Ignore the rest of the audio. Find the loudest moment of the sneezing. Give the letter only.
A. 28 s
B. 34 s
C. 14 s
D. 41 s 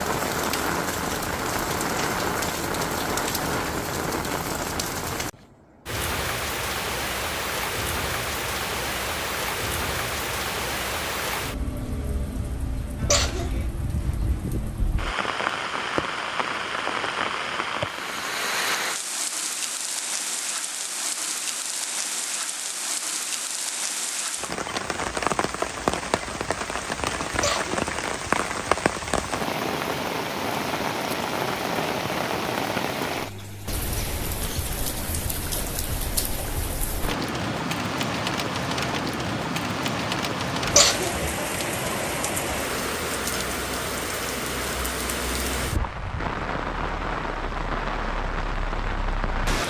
D.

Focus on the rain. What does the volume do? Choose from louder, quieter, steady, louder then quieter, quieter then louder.
steady.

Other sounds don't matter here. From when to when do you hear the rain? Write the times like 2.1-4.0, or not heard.
0.0-49.6.